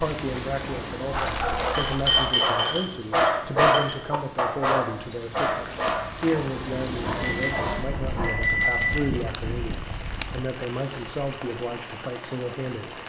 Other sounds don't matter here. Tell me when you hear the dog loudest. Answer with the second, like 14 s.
4 s.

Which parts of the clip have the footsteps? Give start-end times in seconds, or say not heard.
not heard.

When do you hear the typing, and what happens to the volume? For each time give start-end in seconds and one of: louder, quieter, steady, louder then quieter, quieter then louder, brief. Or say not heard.
not heard.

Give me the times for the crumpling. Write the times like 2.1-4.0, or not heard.
1.1-2.3, 5.5-6.5, 8.9-11.1.